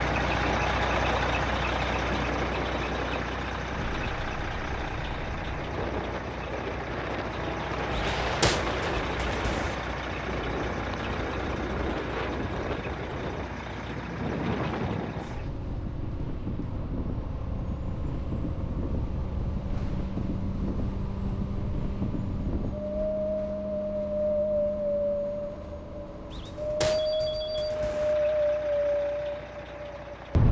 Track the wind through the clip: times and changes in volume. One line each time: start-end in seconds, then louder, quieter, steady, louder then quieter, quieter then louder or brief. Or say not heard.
0.1-30.4 louder.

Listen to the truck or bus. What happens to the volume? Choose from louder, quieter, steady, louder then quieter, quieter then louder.
quieter.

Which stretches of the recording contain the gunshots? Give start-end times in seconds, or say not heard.
7.9-9.8, 26.3-28.1.